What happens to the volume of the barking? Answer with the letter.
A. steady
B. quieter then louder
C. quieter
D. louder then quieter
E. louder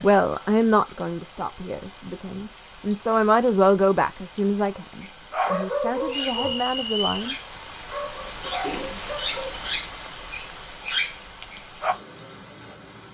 B.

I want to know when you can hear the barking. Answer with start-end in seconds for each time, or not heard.
5.0-11.9.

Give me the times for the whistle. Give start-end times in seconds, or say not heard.
6.1-7.3.